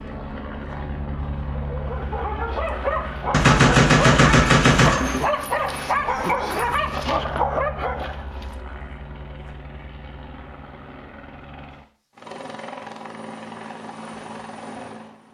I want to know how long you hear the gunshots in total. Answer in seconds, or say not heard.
2 s.